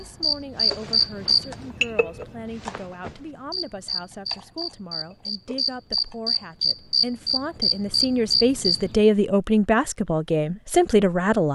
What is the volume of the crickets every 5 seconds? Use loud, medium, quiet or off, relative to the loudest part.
loud, loud, off.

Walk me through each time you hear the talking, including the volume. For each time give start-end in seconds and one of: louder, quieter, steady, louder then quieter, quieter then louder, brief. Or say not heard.
0.0-11.5 louder.